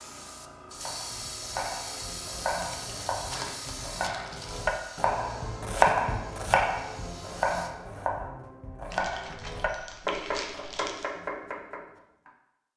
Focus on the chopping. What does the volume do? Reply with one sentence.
The loudness of the chopping goes up, then down.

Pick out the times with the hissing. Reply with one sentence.
The hissing can be heard from 0.0 to 7.8 s.